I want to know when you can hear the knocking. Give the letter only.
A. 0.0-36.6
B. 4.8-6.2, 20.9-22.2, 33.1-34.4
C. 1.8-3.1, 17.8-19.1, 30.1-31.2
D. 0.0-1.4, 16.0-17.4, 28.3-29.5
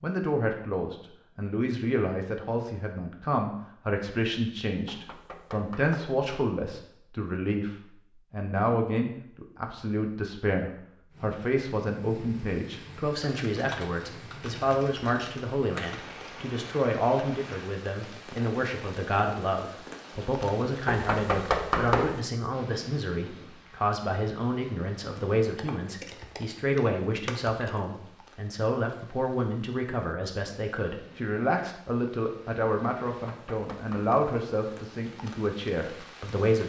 B.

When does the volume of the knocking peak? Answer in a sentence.
The volume of the knocking peaks at 22 seconds.